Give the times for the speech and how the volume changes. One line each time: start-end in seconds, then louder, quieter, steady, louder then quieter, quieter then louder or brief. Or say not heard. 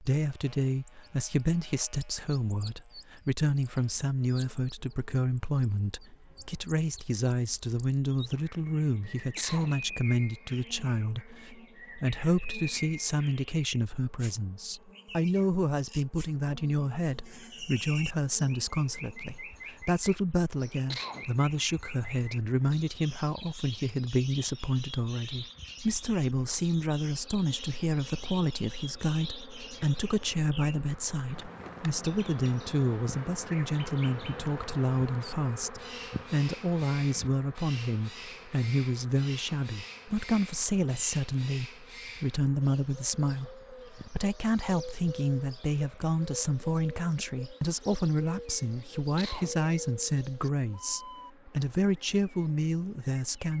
0.0-53.5 steady.